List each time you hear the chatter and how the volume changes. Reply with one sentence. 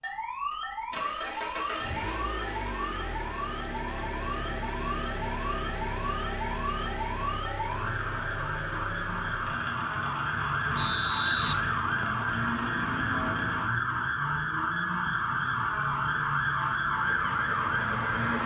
The chatter can't be heard in this clip.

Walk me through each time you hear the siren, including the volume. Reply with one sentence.
The siren can be heard from 0.0 to 18.4 s, getting louder.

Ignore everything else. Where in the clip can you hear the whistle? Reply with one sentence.
The whistle can be heard from 10.8 to 12.2 s.